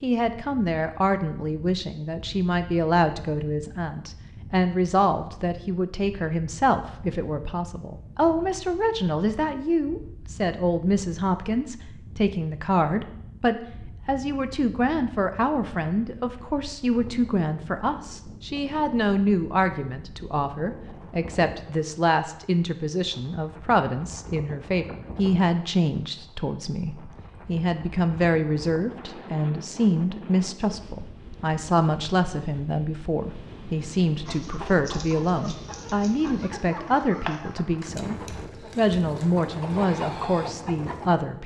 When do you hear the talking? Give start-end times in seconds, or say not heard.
0.0-41.4.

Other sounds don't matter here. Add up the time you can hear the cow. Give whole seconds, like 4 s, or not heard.
not heard.